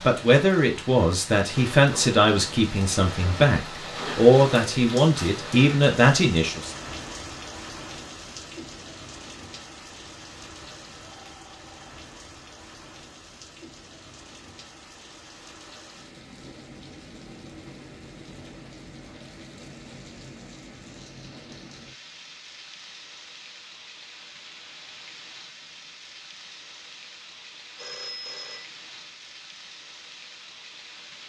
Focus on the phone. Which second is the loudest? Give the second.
28 s.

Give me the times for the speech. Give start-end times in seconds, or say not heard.
0.0-6.7.